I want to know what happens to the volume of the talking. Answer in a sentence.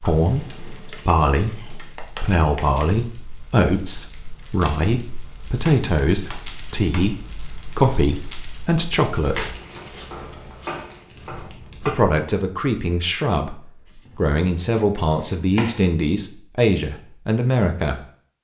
The loudness of the talking stays about the same.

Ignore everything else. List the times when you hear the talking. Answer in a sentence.
You can hear the talking from 0.0 to 9.6 s and from 11.8 to 18.0 s.